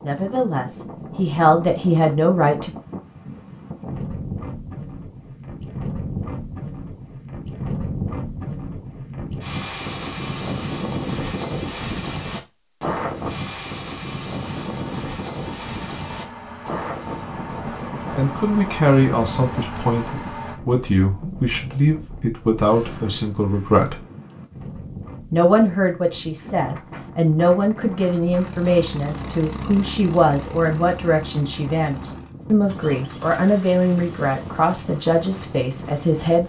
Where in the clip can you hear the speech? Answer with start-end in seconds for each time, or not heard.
0.0-2.7, 18.1-24.0, 25.3-36.4.